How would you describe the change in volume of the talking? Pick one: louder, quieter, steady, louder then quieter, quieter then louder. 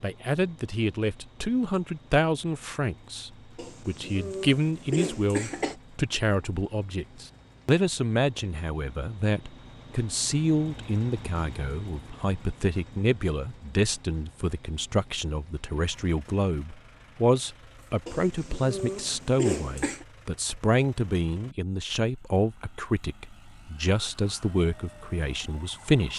steady.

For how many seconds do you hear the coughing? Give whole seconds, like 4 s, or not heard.
4 s.